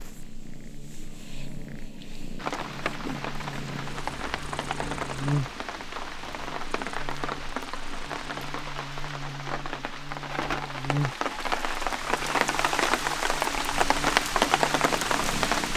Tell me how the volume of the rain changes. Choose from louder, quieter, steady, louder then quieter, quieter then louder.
louder.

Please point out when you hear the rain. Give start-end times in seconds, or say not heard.
2.4-15.7.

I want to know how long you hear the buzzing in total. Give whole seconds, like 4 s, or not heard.
16 s.